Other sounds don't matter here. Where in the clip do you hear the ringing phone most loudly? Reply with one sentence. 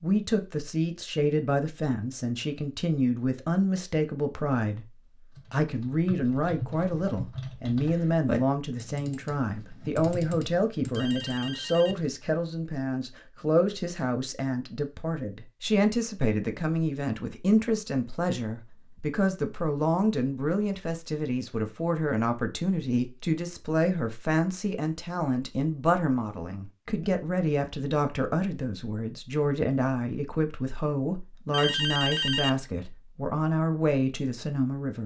The loudest moment of the ringing phone is at 32 seconds.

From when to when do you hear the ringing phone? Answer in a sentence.
The ringing phone can be heard from 10.9 to 12.0 s and from 31.5 to 32.6 s.